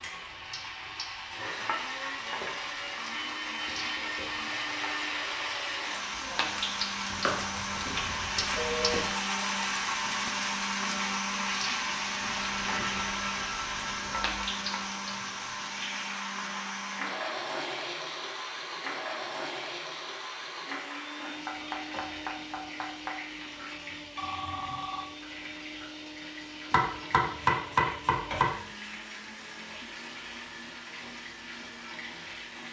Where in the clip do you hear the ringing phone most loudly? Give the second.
9 s.